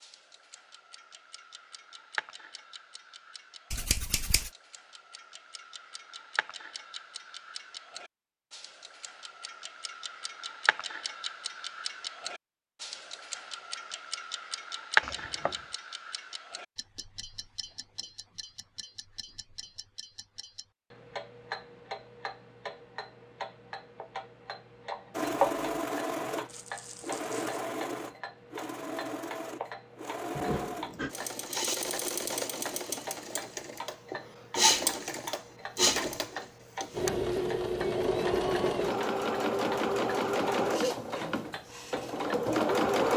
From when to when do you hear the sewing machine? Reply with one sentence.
You can hear the sewing machine from 25.1 to 43.1 s.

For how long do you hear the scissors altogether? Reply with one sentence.
You can hear the scissors for 2 seconds altogether.